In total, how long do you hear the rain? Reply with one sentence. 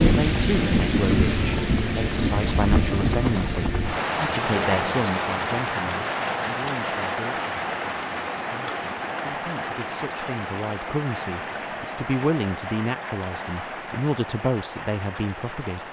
The rain can be heard for 16 seconds in total.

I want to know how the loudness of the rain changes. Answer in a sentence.
The loudness of the rain goes down.